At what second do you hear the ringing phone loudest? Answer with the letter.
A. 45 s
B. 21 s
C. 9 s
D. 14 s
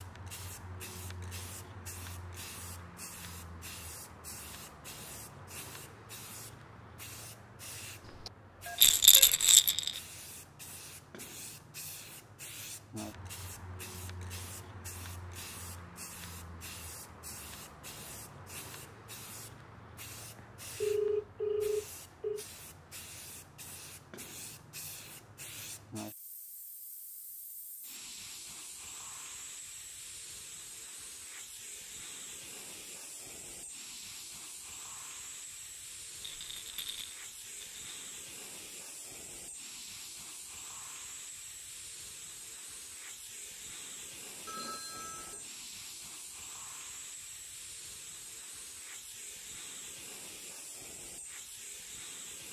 B.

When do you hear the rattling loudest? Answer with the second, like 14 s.
9 s.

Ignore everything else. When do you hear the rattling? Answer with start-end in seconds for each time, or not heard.
8.8-10.0, 36.2-37.9.